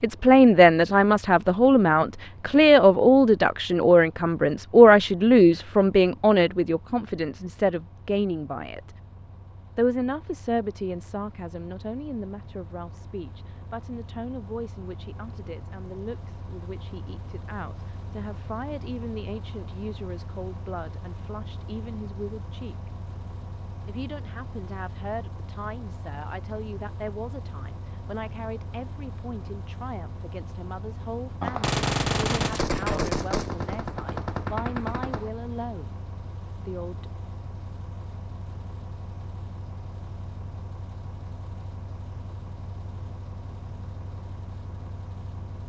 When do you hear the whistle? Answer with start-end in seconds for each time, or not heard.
not heard.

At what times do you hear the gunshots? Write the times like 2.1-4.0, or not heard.
31.4-35.3.